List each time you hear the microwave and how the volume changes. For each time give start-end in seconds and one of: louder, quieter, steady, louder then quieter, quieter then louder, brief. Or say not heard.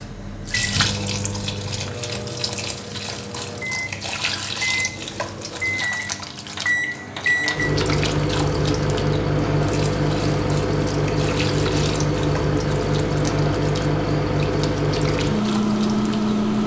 0.0-16.6 louder.